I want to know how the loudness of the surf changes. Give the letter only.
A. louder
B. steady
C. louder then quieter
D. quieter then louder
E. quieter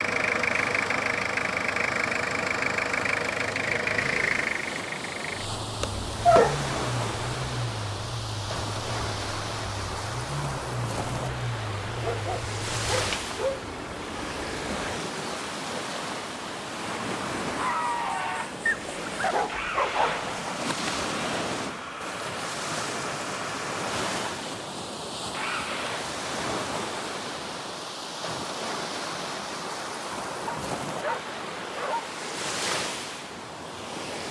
B.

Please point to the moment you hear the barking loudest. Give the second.
6 s.